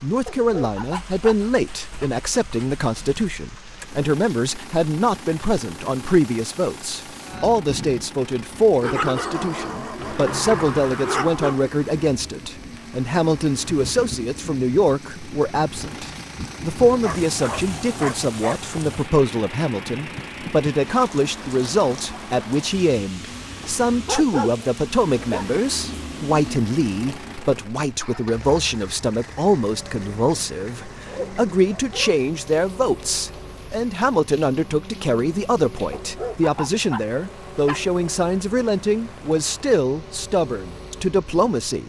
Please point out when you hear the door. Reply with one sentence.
The door can be heard from 9.9 to 11.6 s.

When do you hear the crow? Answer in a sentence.
The crow can't be heard in this clip.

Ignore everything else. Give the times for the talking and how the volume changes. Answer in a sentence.
The talking can be heard from 0.0 to 41.8 s, at a steady volume.